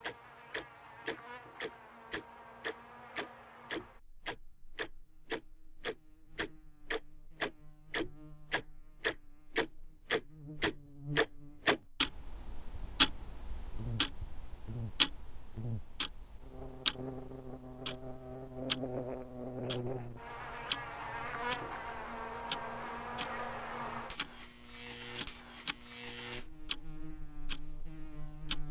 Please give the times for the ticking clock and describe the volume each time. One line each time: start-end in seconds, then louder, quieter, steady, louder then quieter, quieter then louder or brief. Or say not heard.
0.0-28.6 louder then quieter.